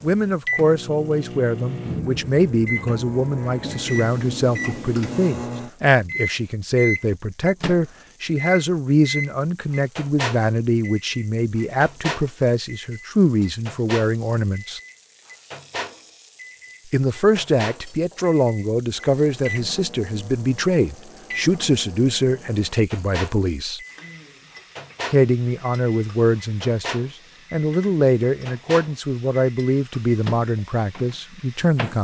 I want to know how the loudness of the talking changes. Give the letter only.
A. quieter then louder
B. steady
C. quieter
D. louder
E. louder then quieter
B.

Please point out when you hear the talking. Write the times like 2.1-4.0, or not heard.
0.0-14.8, 16.9-23.8, 25.1-32.0.